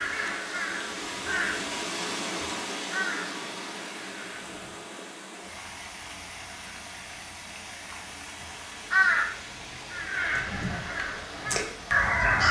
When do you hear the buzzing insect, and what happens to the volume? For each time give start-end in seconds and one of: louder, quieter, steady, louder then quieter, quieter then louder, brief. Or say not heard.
not heard.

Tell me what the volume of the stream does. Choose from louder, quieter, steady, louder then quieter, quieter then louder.
quieter.